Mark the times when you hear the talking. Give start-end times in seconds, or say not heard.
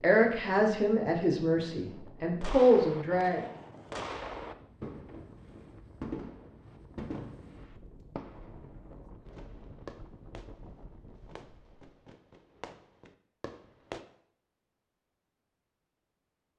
0.0-3.4.